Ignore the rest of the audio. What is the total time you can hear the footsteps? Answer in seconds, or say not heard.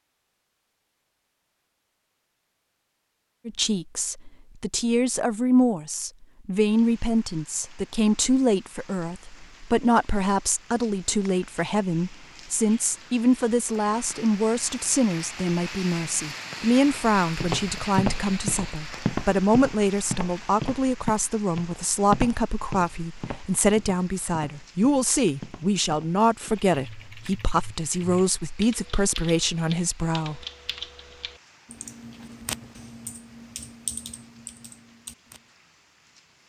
9 s.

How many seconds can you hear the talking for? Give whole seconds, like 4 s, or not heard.
27 s.